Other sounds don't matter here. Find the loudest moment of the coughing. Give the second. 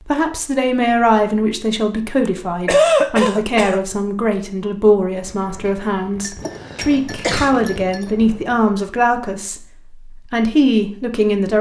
3 s.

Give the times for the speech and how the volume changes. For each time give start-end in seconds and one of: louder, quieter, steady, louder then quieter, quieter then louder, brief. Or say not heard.
0.1-11.5 steady.